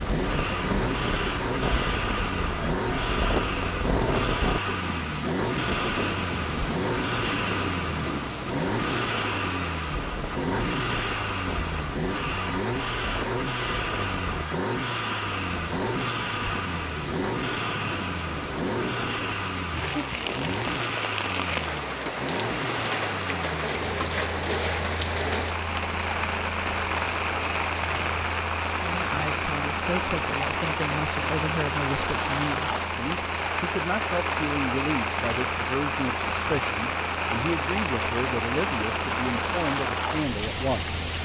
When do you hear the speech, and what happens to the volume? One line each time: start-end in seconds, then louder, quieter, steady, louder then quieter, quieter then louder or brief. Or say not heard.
28.8-41.2 steady.